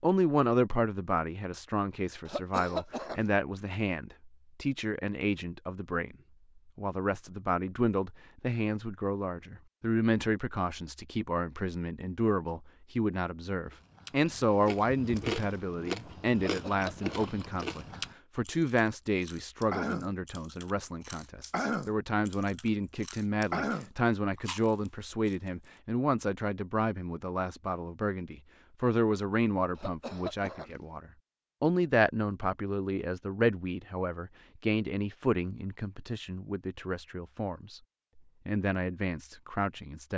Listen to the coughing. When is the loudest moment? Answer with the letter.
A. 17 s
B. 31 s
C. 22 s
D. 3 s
D.